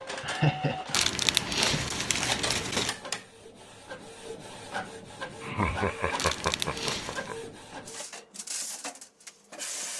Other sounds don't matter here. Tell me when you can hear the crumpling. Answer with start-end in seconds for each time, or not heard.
0.9-2.9, 6.2-7.3.